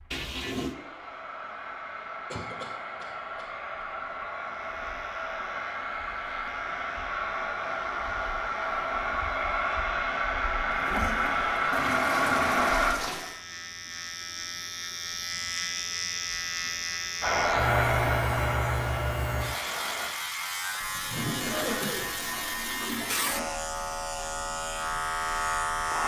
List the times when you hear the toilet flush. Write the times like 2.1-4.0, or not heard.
0.1-0.8, 10.7-13.4, 20.8-23.5.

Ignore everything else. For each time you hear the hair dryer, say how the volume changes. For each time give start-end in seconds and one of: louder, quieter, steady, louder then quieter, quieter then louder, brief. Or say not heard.
0.0-12.9 louder
17.2-20.1 brief.